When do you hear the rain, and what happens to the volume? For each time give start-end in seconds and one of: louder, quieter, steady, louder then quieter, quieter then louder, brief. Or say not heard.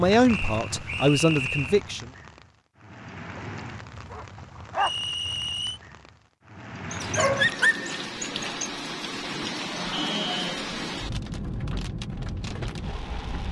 0.0-13.4 louder.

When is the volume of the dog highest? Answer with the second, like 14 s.
8 s.